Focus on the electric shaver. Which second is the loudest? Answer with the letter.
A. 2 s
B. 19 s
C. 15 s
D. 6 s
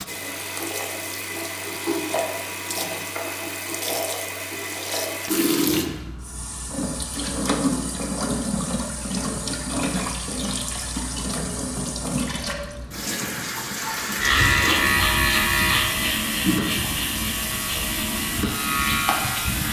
C.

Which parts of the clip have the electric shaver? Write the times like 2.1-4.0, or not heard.
14.2-19.6.